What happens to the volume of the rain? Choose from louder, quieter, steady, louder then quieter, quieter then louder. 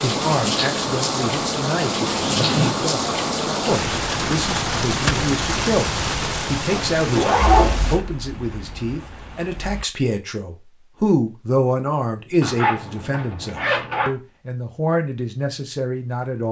quieter.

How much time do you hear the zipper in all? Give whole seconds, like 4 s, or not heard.
4 s.